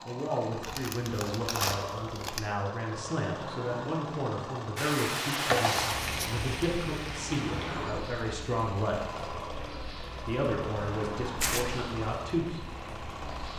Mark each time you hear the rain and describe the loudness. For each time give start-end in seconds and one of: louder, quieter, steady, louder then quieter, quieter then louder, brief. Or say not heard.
4.8-13.5 quieter.